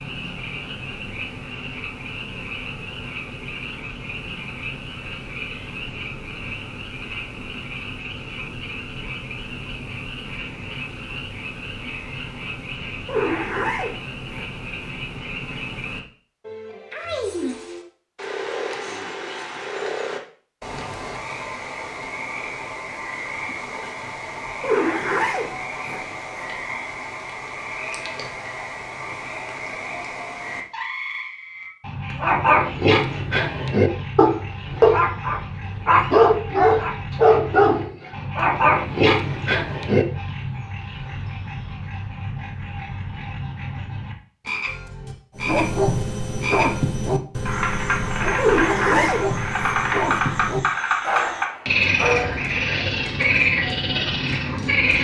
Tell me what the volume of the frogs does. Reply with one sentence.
The loudness of the frogs goes up.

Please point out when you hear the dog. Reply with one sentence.
The dog can be heard from 32.2 to 40.0 s and from 45.4 to 52.6 s.